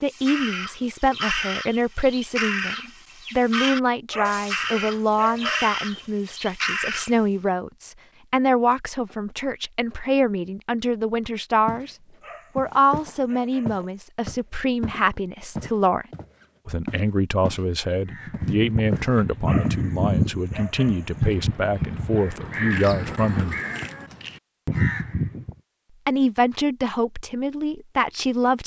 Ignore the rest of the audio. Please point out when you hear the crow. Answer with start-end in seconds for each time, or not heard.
0.1-7.2, 18.1-25.6.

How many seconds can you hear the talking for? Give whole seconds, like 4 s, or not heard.
25 s.